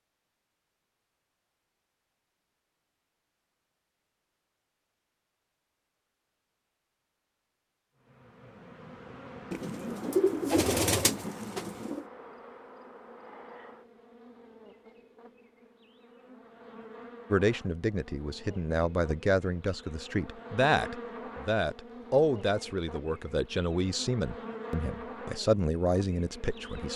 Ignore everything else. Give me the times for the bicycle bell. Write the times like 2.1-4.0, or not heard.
not heard.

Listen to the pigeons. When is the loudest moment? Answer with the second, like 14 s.
10 s.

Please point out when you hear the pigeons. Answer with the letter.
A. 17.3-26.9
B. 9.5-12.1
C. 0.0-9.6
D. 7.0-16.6
B.